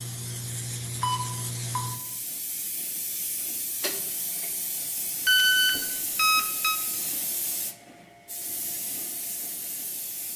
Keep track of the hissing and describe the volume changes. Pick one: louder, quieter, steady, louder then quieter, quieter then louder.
quieter.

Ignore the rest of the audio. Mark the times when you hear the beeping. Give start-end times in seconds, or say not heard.
1.0-1.9, 5.2-6.8.